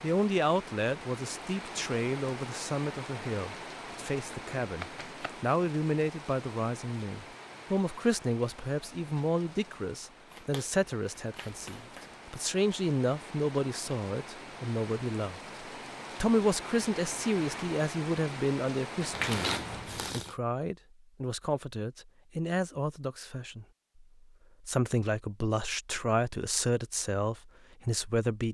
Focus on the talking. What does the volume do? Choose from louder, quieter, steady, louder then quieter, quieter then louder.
steady.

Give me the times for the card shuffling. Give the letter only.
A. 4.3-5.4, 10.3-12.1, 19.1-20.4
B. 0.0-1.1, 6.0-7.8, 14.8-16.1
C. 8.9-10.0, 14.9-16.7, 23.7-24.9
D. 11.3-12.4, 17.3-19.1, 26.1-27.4
A.